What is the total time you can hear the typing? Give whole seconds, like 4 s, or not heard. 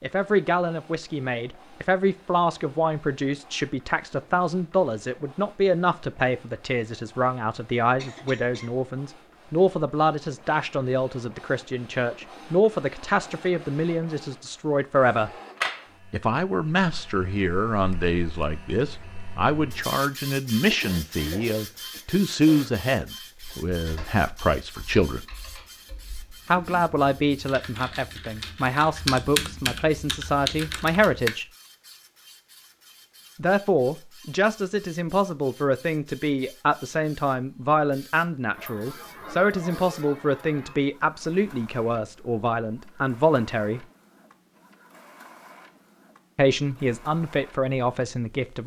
8 s.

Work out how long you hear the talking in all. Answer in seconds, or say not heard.
42 s.